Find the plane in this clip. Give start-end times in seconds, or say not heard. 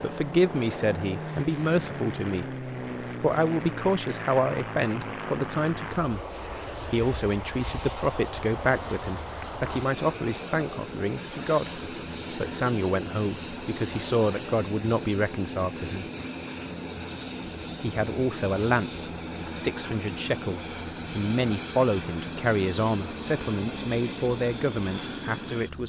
0.0-25.8.